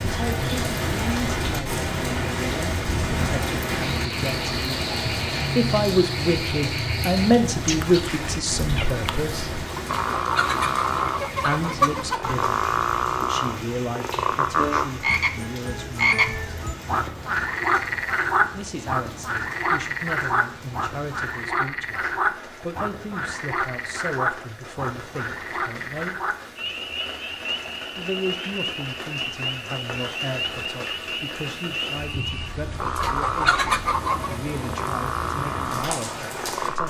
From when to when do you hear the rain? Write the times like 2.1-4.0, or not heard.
0.0-36.8.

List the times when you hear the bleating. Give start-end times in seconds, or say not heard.
not heard.